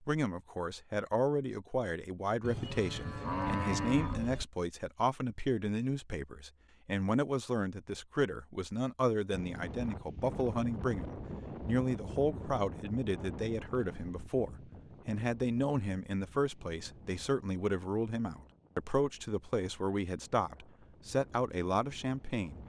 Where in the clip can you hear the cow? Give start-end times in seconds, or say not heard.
2.4-4.5.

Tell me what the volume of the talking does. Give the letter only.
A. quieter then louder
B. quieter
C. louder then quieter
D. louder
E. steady
E.